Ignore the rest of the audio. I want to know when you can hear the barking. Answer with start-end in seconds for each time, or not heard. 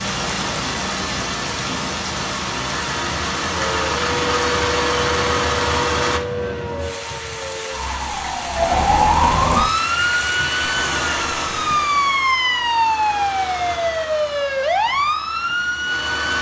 not heard.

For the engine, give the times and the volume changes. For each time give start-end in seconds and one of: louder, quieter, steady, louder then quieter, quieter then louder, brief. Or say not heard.
0.0-6.2 louder
9.8-16.3 quieter.